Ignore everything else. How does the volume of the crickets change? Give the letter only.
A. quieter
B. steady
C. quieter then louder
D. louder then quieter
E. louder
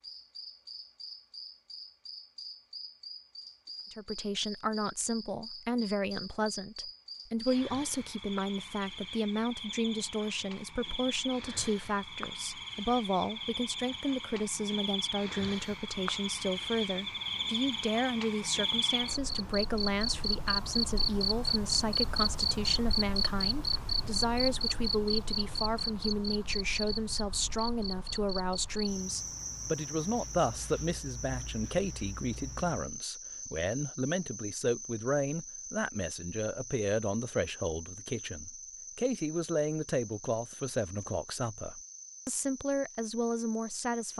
D.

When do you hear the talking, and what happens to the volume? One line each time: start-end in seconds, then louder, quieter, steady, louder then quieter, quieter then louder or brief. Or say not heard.
3.9-44.1 steady.